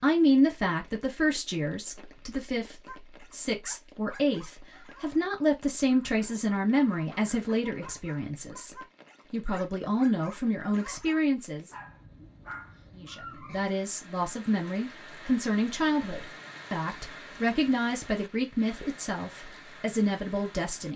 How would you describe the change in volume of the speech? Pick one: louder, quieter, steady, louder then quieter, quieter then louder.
steady.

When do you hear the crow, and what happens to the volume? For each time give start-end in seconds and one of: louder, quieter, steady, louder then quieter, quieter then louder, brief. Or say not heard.
not heard.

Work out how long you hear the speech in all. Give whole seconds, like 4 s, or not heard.
20 s.